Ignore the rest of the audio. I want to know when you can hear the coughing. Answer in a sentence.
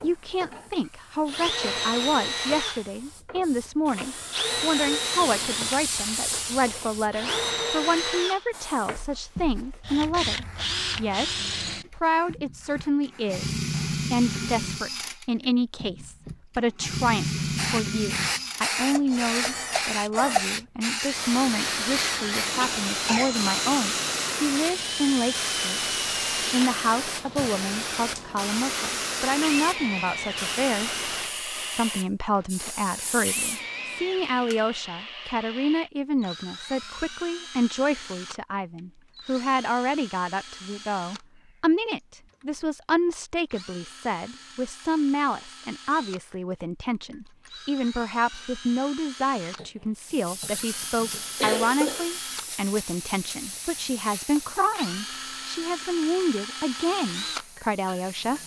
You can hear the coughing from 22.6 to 23.4 s and from 49.5 to 52.1 s.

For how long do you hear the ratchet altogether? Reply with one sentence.
You can't hear the ratchet here.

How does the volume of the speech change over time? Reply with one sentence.
The volume of the speech stays about the same.